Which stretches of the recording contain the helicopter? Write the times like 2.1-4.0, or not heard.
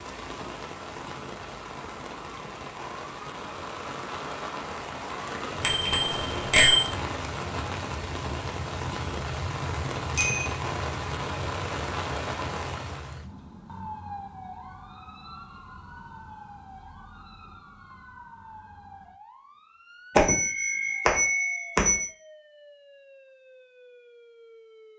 not heard.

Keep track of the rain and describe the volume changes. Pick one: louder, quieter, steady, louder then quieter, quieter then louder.
louder.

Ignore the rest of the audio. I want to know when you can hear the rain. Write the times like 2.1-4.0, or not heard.
0.0-13.2.